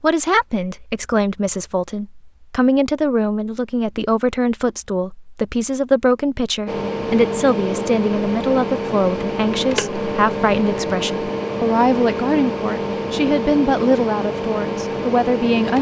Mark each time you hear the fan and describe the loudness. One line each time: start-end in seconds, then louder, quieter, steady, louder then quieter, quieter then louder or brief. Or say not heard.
6.7-15.7 steady.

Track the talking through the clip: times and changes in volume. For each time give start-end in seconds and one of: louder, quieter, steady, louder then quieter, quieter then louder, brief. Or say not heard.
0.0-15.7 steady.